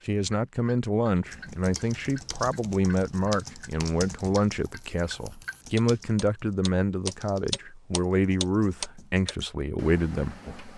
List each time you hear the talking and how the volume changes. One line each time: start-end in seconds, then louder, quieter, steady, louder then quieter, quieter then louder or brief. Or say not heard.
0.1-10.7 steady.